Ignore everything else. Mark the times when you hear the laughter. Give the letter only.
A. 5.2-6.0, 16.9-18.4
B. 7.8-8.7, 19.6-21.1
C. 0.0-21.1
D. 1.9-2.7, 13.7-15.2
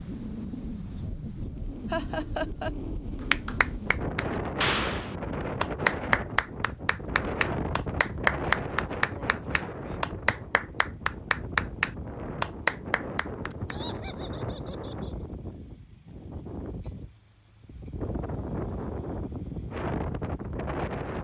D.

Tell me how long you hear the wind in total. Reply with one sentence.
The wind can be heard for 21 seconds in total.